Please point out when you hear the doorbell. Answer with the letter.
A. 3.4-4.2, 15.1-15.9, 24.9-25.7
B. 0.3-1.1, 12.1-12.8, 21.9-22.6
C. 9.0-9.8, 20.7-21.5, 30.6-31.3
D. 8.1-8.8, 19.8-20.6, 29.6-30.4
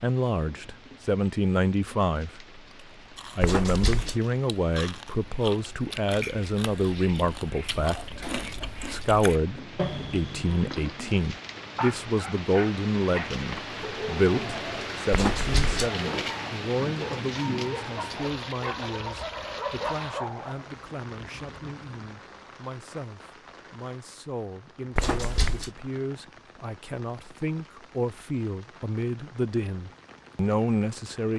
A.